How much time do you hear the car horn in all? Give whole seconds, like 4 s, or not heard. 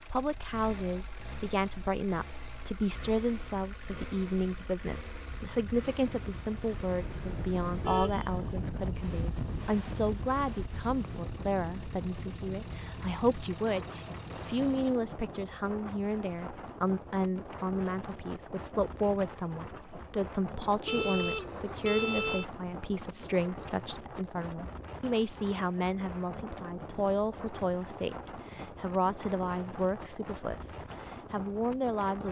3 s.